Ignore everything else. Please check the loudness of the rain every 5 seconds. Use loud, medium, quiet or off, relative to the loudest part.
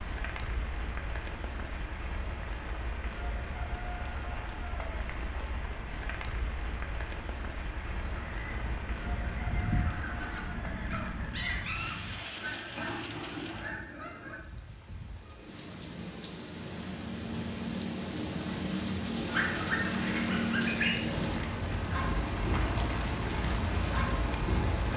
medium, medium, medium, loud, loud.